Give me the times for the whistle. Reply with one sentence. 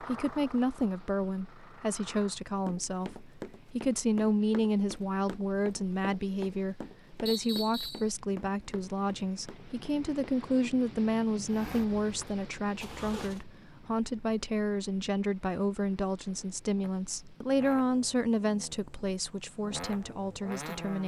The whistle can be heard from 7.2 to 8.1 s.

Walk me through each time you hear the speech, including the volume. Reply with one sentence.
The speech can be heard from 0.0 to 21.0 s, at a steady volume.